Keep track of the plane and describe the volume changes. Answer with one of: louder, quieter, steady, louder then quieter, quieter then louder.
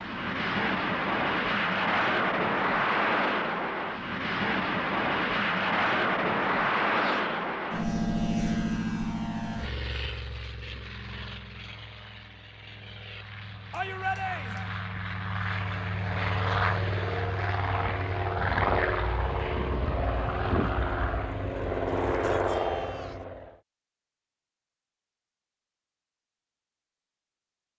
quieter then louder.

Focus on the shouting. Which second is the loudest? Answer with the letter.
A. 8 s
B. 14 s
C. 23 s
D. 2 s
B.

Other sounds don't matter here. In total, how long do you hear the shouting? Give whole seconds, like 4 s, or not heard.
3 s.